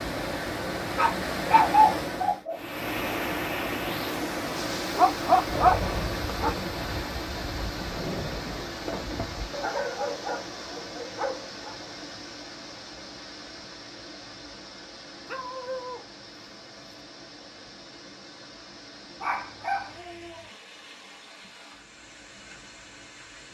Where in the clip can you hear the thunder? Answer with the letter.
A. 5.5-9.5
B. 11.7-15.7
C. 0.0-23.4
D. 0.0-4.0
A.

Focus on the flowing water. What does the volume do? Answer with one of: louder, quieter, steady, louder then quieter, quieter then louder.
quieter.